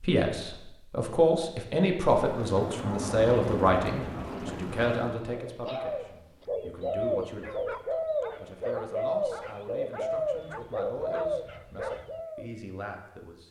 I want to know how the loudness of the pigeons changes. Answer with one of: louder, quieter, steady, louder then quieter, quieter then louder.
steady.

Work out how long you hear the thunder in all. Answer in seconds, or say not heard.
3 s.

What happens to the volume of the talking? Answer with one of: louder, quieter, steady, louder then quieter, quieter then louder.
quieter.